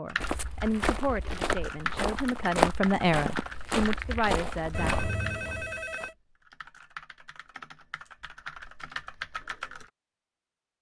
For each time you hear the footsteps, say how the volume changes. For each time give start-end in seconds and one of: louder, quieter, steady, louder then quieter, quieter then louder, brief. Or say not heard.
0.1-6.1 louder then quieter.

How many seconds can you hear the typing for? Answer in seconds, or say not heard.
10 s.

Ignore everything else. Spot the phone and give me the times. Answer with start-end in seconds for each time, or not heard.
4.7-6.2.